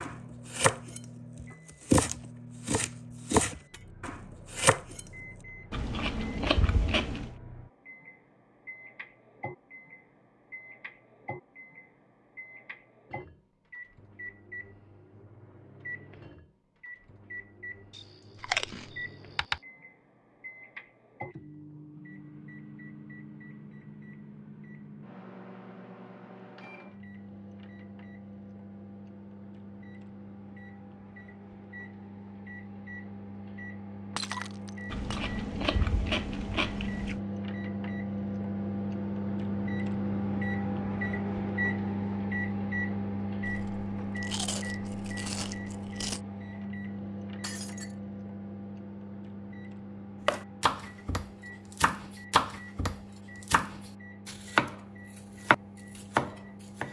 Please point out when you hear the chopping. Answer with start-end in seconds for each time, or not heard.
0.0-5.0, 50.2-54.8, 55.5-56.8.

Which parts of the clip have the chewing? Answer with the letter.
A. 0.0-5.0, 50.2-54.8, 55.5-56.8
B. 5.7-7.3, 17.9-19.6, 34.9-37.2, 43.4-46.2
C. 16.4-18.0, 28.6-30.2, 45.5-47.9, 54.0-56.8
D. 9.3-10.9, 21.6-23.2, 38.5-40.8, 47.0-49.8
B.